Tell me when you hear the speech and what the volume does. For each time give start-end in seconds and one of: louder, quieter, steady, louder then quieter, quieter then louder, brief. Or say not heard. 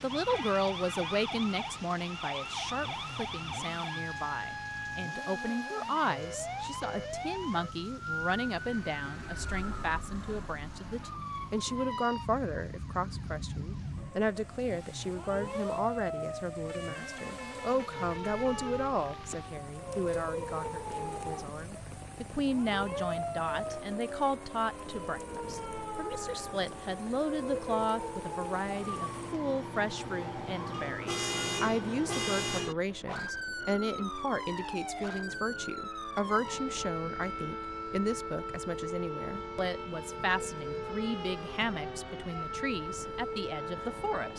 0.0-44.3 steady.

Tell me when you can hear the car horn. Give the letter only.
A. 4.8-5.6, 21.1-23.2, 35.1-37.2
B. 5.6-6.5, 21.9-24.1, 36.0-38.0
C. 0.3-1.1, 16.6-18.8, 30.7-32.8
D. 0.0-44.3
C.